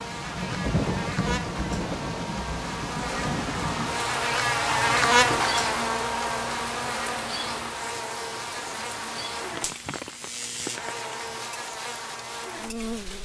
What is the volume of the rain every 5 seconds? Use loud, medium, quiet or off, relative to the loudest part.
loud, medium, medium.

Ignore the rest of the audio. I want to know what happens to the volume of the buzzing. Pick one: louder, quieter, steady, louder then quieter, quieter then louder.
louder then quieter.